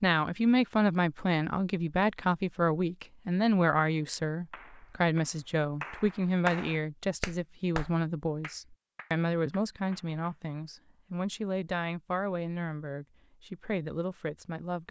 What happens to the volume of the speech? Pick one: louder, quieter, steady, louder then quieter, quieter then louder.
quieter.